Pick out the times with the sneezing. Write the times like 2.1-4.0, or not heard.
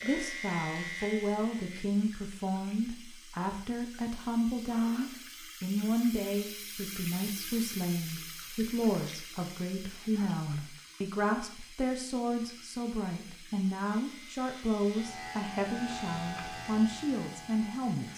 not heard.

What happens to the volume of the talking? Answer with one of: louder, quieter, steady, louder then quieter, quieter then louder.
steady.